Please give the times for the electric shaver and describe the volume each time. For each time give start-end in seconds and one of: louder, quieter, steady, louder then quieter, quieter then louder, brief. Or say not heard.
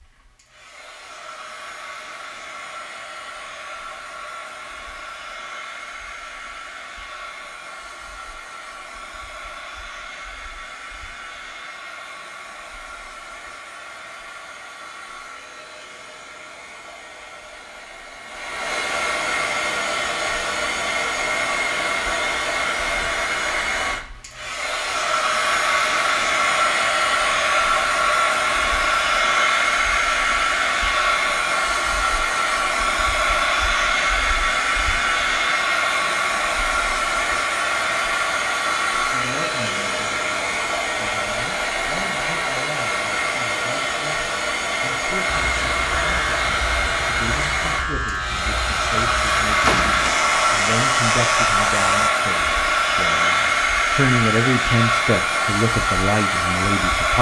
45.2-52.1 steady.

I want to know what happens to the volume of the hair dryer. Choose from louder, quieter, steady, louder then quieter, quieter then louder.
louder.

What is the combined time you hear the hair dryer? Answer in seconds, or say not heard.
57 s.